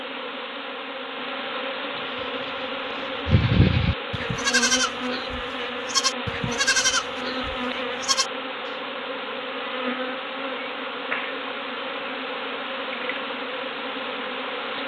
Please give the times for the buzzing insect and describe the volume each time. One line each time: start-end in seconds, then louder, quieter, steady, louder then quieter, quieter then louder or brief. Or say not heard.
0.0-14.8 steady.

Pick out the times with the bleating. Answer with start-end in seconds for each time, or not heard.
2.4-8.3.